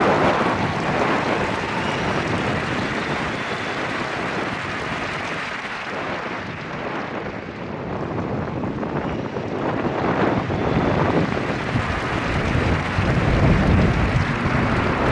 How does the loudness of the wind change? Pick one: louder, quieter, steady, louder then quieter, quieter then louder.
quieter then louder.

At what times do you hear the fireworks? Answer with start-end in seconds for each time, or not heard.
not heard.